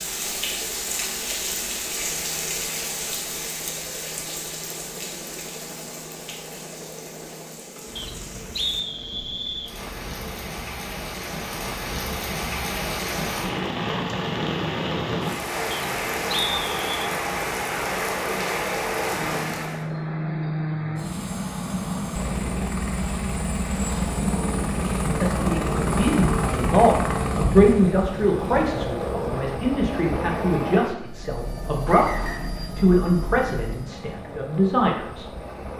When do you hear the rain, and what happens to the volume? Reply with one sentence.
The rain can be heard from 0.0 to 19.9 s, getting quieter then louder.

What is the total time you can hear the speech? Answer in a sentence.
You can hear the speech for 10 seconds altogether.